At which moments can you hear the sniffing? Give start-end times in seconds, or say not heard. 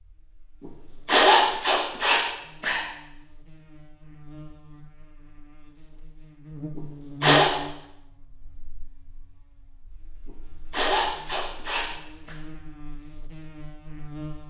1.1-2.8, 6.8-7.5, 10.2-12.3.